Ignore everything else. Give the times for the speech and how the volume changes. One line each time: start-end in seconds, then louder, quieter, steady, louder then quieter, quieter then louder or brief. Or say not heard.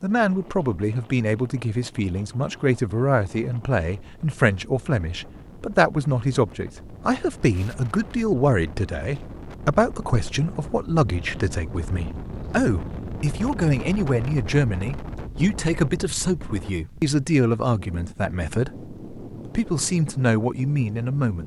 0.0-21.4 steady.